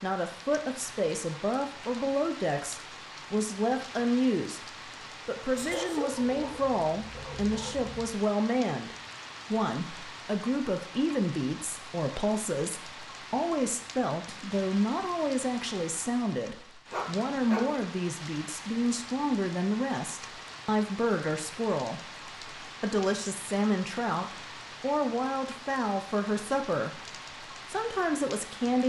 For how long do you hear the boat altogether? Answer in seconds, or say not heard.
not heard.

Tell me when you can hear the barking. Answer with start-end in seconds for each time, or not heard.
5.5-8.1, 16.9-17.6.